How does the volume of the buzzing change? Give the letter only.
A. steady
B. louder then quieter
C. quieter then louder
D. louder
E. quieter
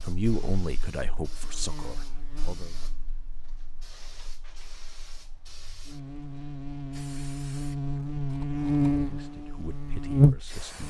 C.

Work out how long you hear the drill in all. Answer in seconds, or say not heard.
not heard.